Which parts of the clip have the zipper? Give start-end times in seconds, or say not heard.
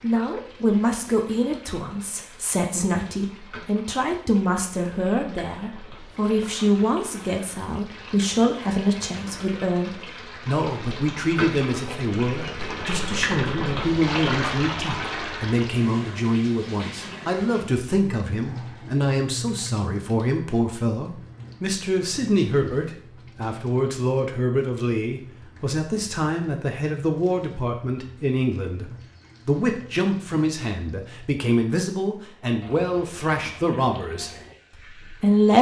not heard.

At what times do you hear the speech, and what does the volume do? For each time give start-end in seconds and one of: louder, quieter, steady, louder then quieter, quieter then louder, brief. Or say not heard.
0.0-35.5 steady.